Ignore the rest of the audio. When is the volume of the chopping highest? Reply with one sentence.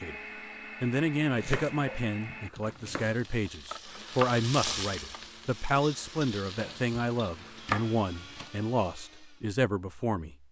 The loudest moment of the chopping is at 8 seconds.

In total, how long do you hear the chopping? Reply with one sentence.
The chopping can be heard for 4 seconds in total.